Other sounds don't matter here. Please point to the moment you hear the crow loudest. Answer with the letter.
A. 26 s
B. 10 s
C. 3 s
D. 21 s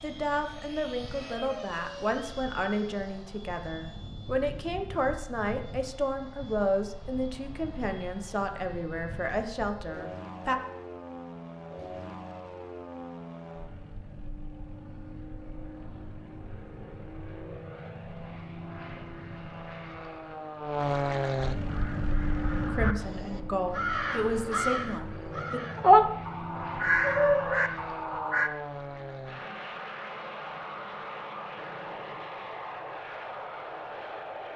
A.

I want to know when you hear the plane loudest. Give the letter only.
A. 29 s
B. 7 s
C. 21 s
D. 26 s
C.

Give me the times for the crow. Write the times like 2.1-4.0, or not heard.
21.6-28.5.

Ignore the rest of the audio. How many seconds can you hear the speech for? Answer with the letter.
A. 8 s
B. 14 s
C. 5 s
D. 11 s
B.